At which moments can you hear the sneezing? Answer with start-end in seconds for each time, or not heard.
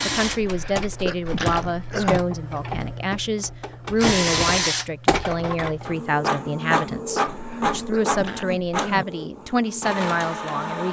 0.4-2.2, 7.2-9.1.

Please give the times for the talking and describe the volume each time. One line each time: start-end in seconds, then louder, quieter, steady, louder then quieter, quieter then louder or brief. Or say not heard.
0.0-10.8 steady.